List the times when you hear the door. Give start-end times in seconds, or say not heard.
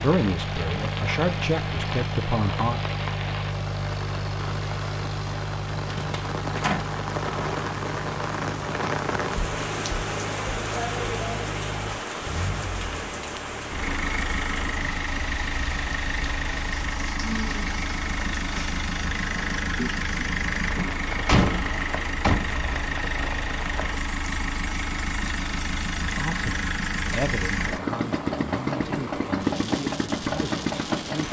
5.8-6.9, 20.8-22.6.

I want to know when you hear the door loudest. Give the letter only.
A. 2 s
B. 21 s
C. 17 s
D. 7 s
B.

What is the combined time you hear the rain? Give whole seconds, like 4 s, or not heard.
31 s.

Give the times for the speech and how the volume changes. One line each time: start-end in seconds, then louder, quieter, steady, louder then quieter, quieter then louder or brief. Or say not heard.
0.0-2.8 brief
26.1-31.2 quieter.